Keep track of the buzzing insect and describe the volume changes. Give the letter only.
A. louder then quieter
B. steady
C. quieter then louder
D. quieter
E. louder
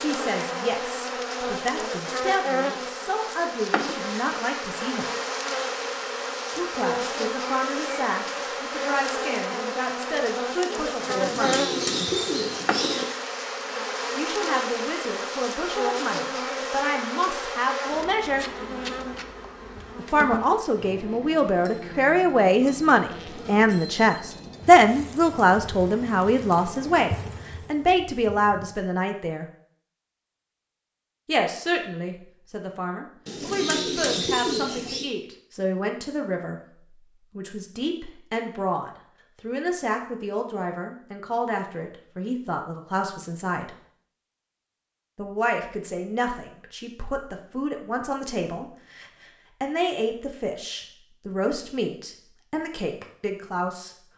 D.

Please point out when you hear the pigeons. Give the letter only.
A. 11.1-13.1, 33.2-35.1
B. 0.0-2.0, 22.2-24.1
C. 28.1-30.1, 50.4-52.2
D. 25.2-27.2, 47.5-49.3
A.